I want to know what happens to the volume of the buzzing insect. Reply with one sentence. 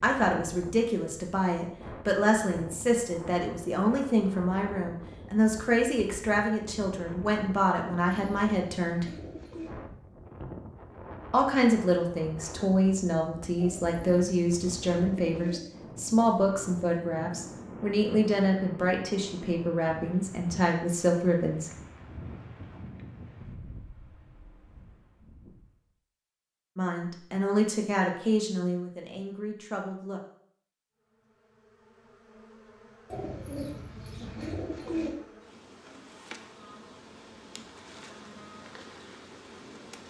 The loudness of the buzzing insect goes up.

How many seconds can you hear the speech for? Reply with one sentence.
You can hear the speech for 23 seconds altogether.